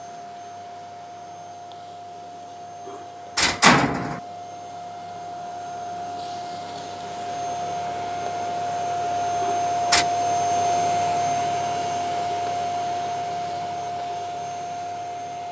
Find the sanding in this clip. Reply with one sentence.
The sanding can't be heard in this clip.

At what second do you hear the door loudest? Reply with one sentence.
The loudest moment of the door is at 4 seconds.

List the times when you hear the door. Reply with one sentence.
The door can be heard from 2.9 to 4.2 s and from 9.4 to 10.1 s.